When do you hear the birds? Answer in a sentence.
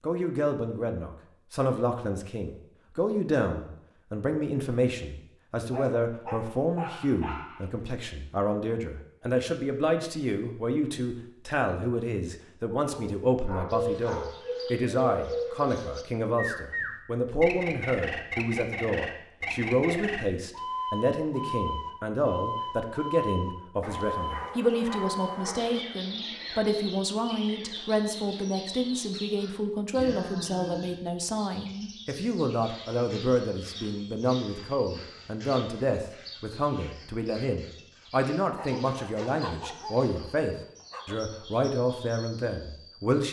The birds can be heard from 13.7 to 43.2 s.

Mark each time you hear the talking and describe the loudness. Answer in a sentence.
The talking can be heard from 0.0 to 43.2 s, at a steady volume.